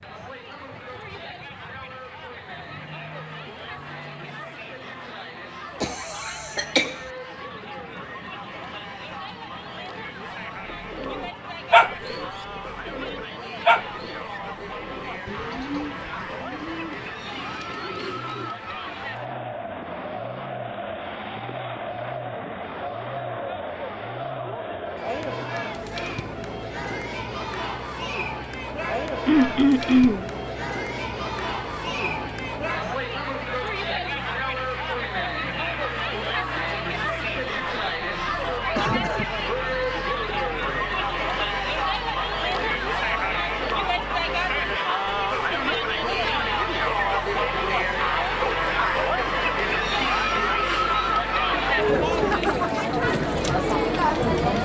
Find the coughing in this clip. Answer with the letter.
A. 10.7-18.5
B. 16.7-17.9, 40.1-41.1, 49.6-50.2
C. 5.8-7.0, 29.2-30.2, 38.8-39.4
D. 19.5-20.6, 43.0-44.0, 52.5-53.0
C.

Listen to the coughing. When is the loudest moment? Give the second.
30 s.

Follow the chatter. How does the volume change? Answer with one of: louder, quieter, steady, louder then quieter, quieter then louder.
louder.